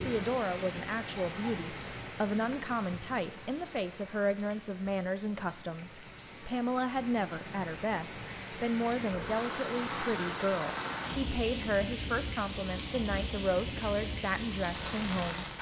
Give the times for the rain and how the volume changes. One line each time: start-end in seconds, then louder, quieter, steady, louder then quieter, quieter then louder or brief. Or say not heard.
0.0-15.5 quieter then louder.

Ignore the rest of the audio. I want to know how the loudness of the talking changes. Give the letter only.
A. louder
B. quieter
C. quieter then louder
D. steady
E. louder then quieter
D.